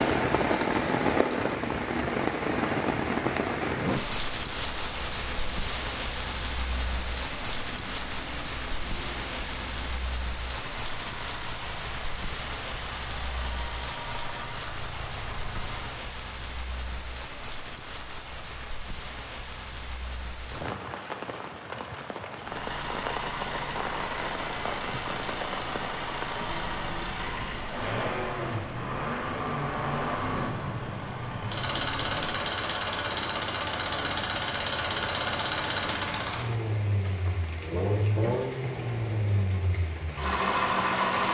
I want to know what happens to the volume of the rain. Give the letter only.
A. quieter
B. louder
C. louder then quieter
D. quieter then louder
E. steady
A.